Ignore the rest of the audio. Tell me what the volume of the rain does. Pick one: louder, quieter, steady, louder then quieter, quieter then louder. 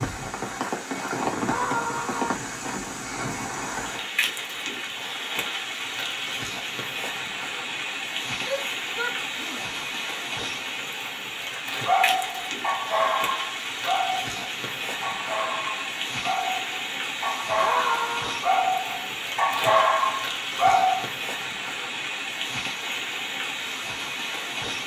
steady.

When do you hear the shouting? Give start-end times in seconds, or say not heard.
1.4-2.4, 8.4-9.7, 17.6-18.4.